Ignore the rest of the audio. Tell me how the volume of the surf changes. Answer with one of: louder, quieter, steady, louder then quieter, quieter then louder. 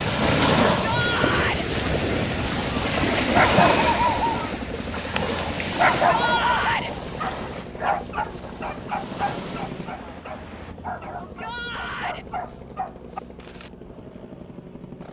quieter.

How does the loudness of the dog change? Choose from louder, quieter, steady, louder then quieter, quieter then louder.
quieter.